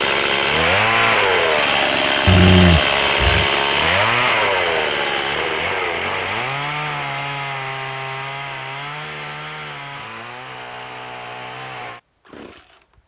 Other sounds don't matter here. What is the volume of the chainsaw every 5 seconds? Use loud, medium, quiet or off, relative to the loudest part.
loud, medium, quiet.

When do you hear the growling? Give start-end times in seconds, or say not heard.
2.2-3.5.